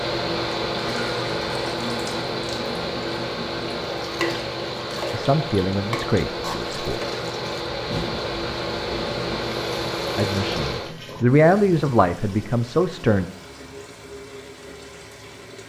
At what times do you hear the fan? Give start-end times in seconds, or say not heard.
0.0-10.9.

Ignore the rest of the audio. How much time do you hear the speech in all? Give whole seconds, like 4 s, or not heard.
5 s.